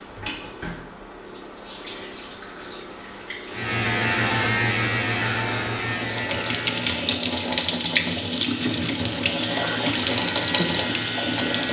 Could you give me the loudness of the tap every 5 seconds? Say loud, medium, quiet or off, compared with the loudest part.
quiet, loud, loud.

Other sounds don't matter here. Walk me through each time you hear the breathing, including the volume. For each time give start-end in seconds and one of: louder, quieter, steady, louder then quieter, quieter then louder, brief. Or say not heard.
not heard.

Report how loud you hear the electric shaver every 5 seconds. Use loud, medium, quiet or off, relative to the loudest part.
loud, medium, medium.